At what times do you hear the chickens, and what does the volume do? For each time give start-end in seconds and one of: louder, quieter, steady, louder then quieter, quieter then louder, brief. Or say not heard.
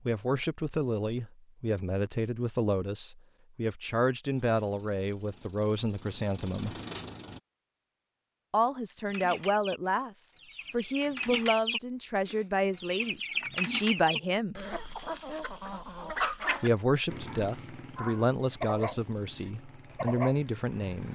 9.1-16.7 louder.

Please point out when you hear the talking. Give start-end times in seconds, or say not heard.
0.1-6.8, 8.5-14.6, 16.6-21.1.